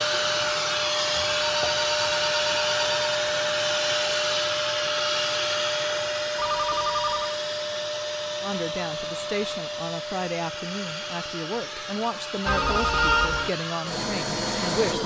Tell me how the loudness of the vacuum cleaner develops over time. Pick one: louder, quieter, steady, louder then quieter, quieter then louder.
quieter.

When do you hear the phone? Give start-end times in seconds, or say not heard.
1.2-3.1, 6.3-7.3, 12.4-13.5.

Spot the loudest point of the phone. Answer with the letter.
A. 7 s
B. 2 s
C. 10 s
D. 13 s
D.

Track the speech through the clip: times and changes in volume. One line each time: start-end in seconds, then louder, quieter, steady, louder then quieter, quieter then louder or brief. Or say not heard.
8.4-15.0 steady.